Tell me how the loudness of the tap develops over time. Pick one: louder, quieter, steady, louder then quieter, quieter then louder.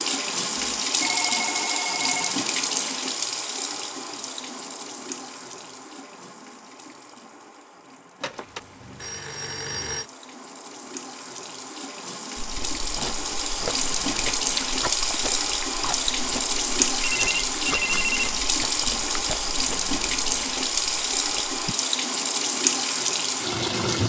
quieter then louder.